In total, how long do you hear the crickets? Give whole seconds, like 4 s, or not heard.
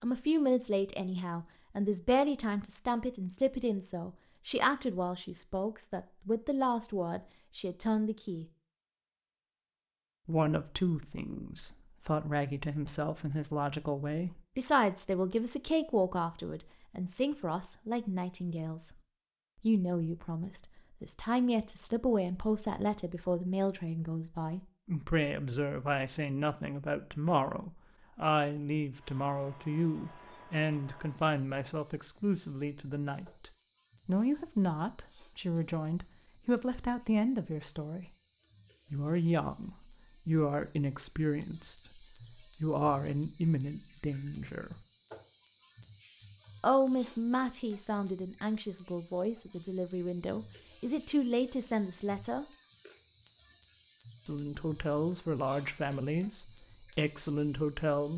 29 s.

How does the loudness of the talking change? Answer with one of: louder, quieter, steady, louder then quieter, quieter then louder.
steady.